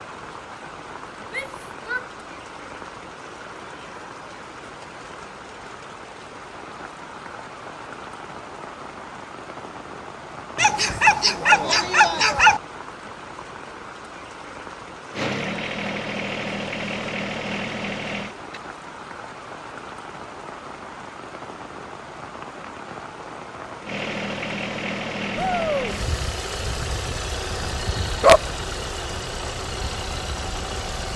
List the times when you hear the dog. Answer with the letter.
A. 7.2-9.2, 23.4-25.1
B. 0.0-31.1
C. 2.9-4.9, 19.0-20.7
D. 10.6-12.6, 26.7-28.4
D.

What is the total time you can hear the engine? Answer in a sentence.
The engine can be heard for 11 seconds in total.